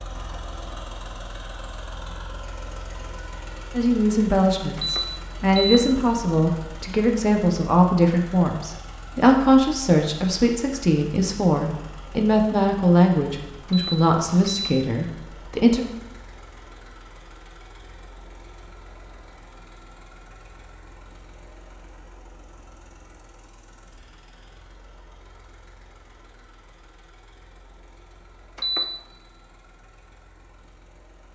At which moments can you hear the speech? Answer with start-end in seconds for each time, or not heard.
3.8-15.8.